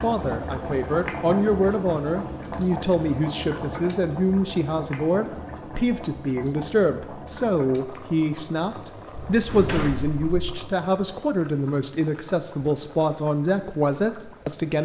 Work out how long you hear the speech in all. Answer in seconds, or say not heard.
15 s.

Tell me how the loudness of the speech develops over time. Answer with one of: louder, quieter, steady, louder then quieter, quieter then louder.
steady.